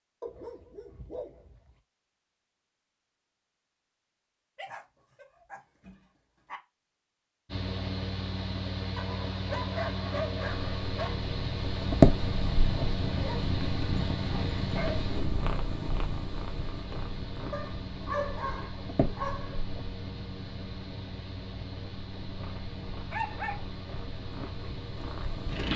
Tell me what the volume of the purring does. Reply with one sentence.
The volume of the purring goes down.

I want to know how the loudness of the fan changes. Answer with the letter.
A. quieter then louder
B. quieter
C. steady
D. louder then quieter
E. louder
B.